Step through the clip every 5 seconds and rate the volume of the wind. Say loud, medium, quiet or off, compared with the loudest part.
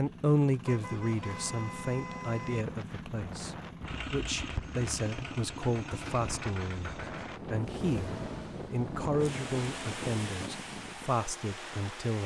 medium, loud, loud.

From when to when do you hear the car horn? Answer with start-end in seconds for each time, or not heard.
0.6-2.6.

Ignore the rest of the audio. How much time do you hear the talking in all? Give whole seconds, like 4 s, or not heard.
12 s.